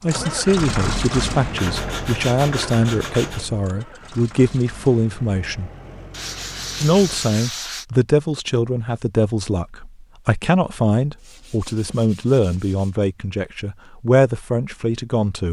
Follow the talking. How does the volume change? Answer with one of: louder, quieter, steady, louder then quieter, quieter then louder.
steady.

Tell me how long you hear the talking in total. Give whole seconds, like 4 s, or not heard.
14 s.